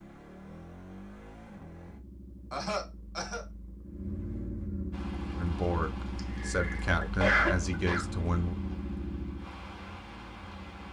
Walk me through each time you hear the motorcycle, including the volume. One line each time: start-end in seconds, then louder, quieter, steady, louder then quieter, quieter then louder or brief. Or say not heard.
0.0-10.8 louder.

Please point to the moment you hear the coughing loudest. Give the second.
7 s.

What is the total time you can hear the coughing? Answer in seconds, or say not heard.
3 s.